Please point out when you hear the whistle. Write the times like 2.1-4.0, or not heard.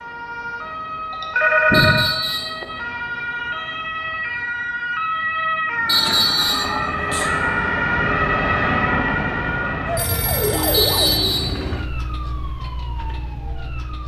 1.7-2.5, 5.8-6.7, 10.7-11.6.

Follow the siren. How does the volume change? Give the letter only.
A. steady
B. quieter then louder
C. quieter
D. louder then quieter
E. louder
D.